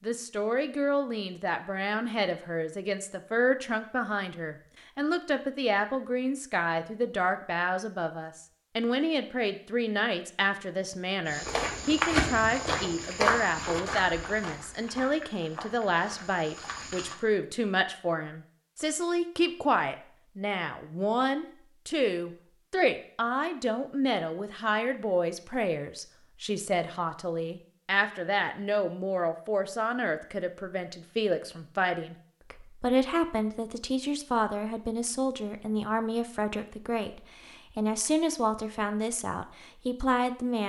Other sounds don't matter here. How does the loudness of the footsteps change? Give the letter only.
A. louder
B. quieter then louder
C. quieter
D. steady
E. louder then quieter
C.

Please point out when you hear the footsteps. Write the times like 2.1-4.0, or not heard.
11.2-17.1.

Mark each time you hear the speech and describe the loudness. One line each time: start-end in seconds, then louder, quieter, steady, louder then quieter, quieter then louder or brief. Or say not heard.
0.0-40.6 steady.